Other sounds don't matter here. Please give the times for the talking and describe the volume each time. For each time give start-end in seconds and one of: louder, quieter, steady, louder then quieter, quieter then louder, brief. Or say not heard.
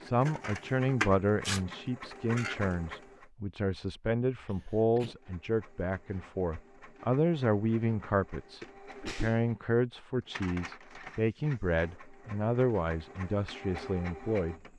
0.0-14.6 steady.